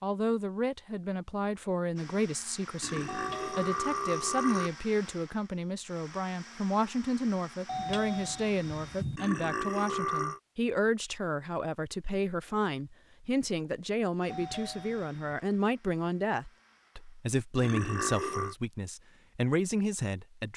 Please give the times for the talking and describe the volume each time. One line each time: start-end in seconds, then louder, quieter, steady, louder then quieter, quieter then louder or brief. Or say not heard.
0.0-20.5 steady.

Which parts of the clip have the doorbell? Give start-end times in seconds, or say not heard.
3.0-3.8, 7.7-9.2, 14.3-15.2.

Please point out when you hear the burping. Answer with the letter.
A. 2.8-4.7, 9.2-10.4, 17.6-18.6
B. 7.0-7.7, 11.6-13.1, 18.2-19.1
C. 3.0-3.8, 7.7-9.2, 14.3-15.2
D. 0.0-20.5
A.